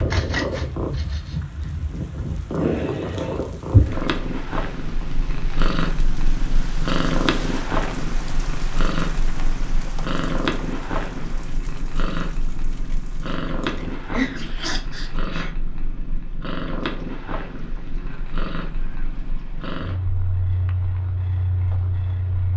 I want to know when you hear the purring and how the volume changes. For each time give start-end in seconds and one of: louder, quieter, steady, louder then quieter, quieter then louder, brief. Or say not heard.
0.0-22.5 quieter.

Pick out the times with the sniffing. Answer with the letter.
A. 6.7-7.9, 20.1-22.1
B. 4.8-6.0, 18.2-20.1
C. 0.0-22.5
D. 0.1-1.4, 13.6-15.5
D.